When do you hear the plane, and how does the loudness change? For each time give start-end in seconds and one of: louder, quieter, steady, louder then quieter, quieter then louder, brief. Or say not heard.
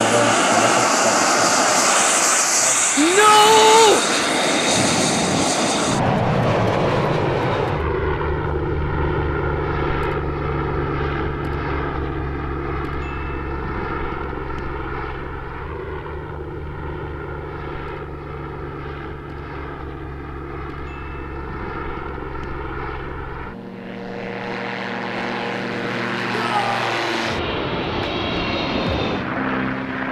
0.0-30.0 quieter then louder.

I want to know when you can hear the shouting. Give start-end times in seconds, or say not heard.
3.0-4.0, 26.3-26.9.